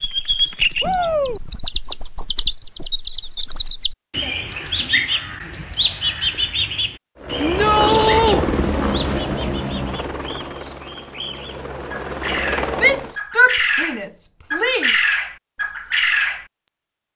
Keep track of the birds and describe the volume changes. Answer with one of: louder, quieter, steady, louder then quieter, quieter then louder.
quieter then louder.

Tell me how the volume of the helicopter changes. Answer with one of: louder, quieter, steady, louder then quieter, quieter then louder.
quieter then louder.